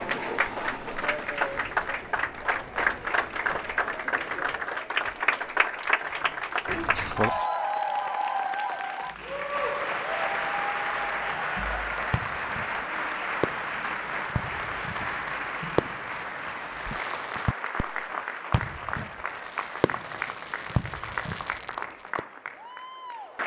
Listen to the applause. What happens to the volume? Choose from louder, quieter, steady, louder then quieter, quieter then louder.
quieter.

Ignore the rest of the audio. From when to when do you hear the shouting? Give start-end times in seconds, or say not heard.
not heard.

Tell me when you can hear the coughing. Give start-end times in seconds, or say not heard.
6.7-7.5.